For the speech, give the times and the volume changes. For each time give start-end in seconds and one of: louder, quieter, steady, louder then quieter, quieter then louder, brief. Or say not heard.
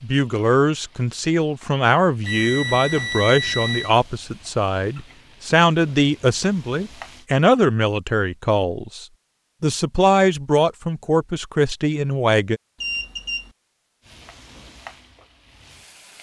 0.0-12.6 steady.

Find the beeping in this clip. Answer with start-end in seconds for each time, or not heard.
2.2-3.9, 12.8-13.6.